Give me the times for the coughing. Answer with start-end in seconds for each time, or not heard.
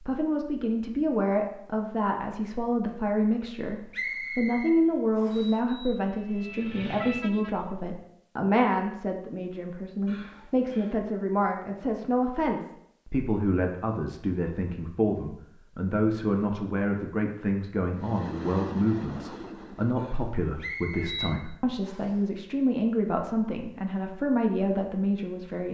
not heard.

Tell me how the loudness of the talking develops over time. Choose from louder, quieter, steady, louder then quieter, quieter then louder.
steady.